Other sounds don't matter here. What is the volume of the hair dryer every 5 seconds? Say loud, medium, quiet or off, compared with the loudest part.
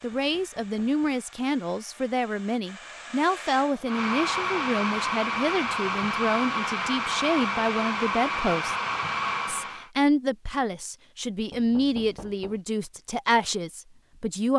medium, loud, off.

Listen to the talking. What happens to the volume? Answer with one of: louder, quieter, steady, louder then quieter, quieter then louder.
steady.